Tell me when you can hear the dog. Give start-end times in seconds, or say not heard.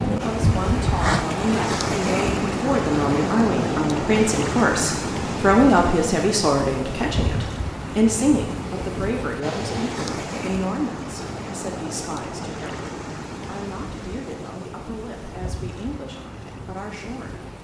not heard.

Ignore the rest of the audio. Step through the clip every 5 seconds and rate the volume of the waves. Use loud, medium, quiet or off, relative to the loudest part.
loud, medium, medium, quiet.